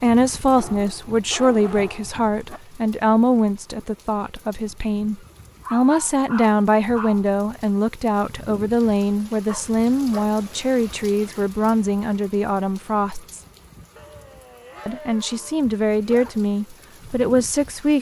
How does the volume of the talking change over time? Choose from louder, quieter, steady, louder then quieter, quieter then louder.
steady.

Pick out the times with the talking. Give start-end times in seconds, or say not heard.
0.0-13.4, 14.8-17.9.